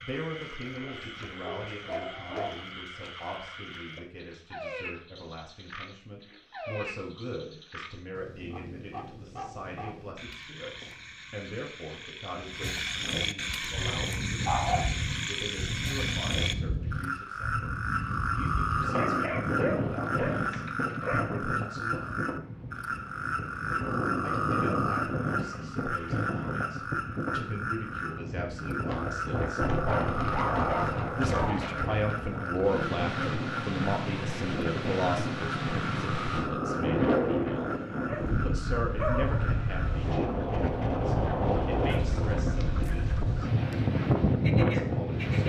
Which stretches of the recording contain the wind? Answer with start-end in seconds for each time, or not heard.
13.7-45.4.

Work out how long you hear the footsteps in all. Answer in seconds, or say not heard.
not heard.